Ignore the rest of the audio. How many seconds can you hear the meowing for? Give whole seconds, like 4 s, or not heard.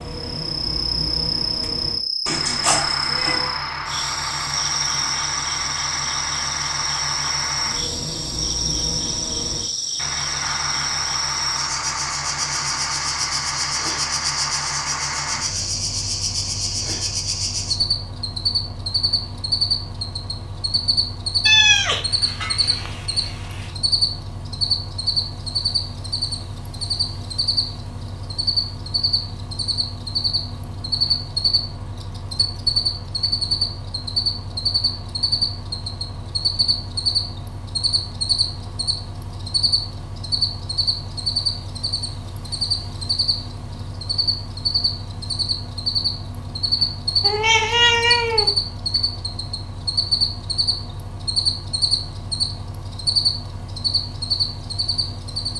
5 s.